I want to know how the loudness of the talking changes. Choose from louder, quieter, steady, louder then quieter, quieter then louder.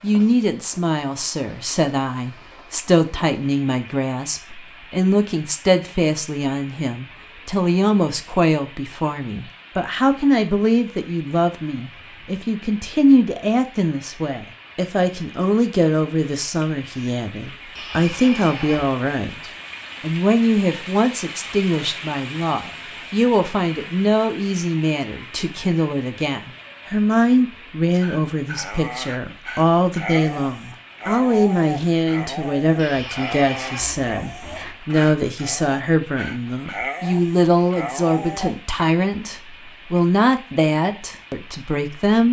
steady.